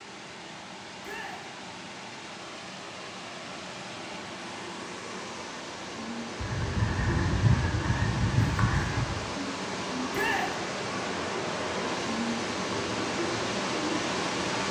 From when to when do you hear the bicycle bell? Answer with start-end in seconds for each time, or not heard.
not heard.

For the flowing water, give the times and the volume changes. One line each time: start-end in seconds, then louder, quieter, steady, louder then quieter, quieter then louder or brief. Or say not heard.
0.0-14.6 louder.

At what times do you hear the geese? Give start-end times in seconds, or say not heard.
6.4-9.2.